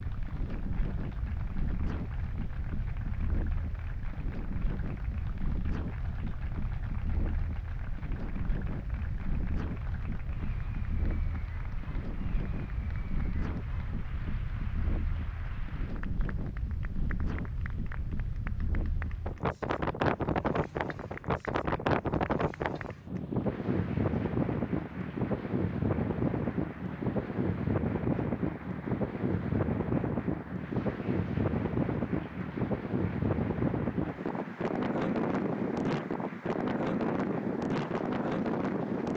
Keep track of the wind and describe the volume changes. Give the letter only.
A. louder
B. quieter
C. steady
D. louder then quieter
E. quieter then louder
A.